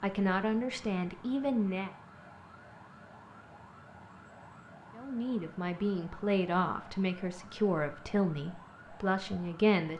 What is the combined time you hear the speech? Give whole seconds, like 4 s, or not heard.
7 s.